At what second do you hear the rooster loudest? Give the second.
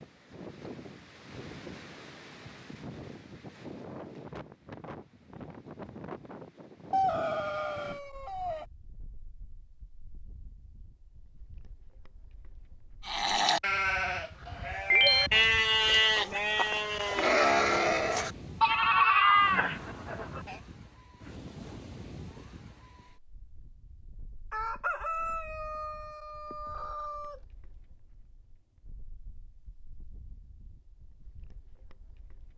7 s.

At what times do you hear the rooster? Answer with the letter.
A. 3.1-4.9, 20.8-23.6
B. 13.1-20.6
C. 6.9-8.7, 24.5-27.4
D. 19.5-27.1
C.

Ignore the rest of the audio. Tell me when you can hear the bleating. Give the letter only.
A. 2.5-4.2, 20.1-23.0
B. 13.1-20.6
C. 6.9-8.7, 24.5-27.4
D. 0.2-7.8
B.